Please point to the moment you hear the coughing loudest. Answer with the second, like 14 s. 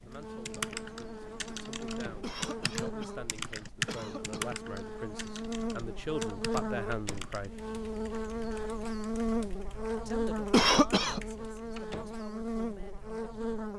11 s.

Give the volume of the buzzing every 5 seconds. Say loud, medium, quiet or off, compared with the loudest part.
medium, loud, loud.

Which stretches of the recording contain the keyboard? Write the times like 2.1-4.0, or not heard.
0.1-11.6.